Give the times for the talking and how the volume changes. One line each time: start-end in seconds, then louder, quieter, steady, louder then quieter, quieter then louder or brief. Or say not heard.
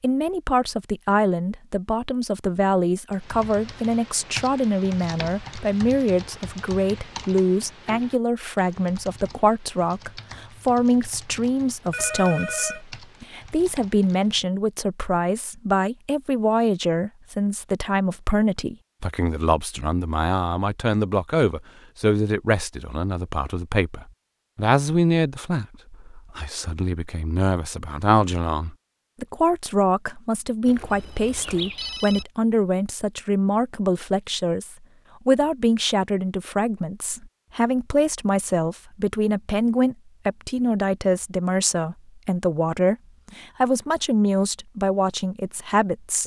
0.0-46.2 steady.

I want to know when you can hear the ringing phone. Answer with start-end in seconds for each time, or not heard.
11.9-12.8, 30.6-32.2.